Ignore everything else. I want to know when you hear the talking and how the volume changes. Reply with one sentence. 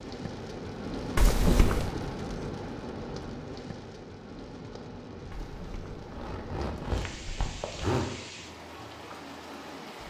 You can't hear the talking here.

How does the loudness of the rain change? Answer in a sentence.
The loudness of the rain goes down.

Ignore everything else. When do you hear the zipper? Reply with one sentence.
The zipper can be heard from 1.1 to 1.9 s and from 5.3 to 8.1 s.